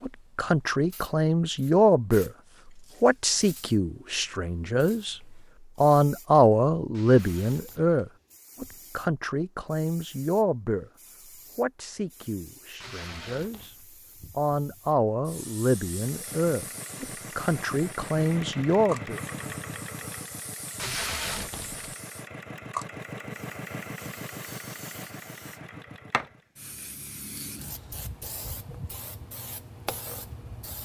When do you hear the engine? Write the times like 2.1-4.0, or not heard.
15.9-26.5.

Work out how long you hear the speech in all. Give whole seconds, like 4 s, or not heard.
17 s.